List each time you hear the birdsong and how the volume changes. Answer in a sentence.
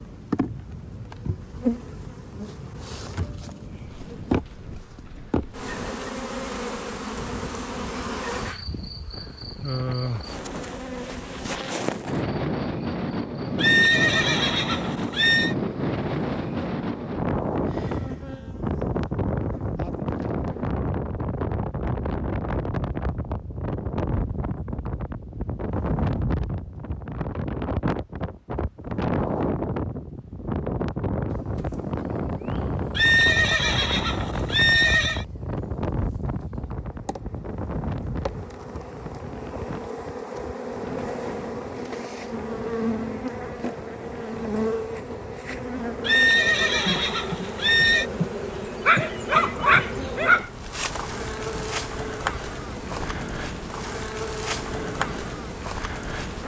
The birdsong can't be heard in this clip.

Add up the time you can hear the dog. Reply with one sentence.
The dog can be heard for 2 seconds in total.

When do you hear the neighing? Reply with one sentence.
The neighing can be heard from 13.6 to 15.6 s, from 33.0 to 35.2 s and from 46.0 to 48.0 s.